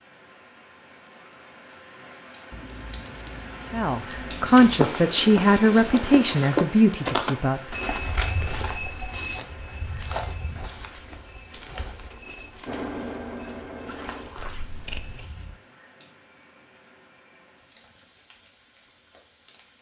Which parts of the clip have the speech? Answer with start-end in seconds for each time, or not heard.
3.7-7.8.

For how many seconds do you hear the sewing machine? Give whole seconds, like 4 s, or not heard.
2 s.